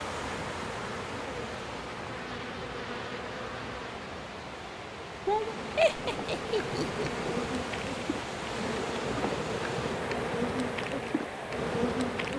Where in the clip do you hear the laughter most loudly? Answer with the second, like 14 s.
6 s.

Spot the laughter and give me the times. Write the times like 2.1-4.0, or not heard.
5.8-7.3.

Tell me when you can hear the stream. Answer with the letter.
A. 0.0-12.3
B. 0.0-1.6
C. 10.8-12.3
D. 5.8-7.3
A.